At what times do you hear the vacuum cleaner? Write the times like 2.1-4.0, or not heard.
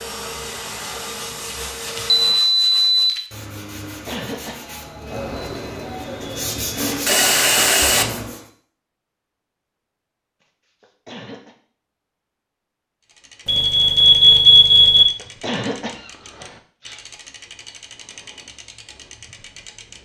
0.0-2.4.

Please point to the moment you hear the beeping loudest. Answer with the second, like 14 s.
14 s.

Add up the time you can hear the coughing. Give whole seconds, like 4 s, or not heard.
3 s.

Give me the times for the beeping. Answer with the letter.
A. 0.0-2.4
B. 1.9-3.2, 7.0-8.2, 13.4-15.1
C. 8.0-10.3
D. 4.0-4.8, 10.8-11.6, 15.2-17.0
B.